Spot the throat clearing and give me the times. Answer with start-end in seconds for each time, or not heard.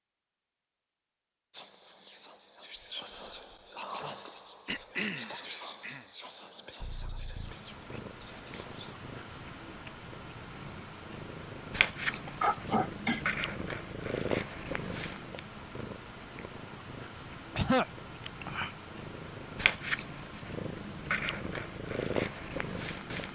4.7-6.0, 12.1-13.2, 17.6-18.8.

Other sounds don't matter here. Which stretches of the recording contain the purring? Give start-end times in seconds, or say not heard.
6.8-23.3.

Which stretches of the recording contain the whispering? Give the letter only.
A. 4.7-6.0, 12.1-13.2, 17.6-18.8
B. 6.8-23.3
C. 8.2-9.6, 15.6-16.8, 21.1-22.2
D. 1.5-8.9
D.